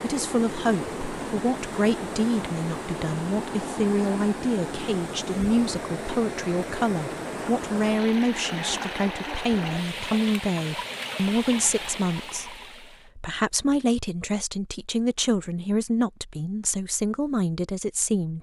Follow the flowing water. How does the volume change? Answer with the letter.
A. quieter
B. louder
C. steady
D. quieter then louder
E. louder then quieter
C.